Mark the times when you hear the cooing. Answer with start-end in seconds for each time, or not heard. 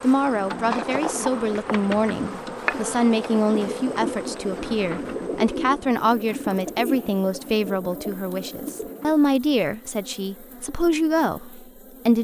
0.1-9.2.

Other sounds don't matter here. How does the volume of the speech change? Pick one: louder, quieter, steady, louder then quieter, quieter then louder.
steady.